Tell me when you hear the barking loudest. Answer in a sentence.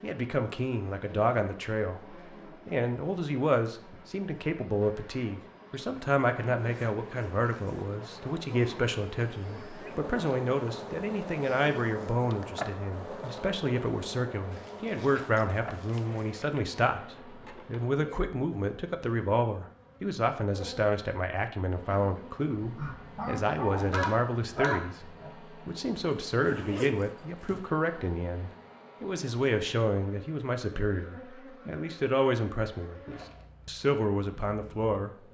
The loudest moment of the barking is at 25 seconds.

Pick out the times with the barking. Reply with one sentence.
The barking can be heard from 22.6 to 25.4 s.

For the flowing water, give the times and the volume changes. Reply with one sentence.
You can't hear the flowing water here.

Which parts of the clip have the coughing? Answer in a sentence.
You can't hear the coughing here.